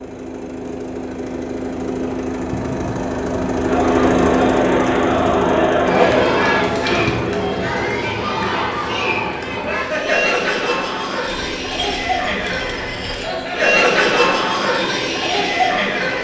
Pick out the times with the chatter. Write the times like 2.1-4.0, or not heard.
3.6-16.1.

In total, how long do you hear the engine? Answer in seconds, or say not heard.
16 s.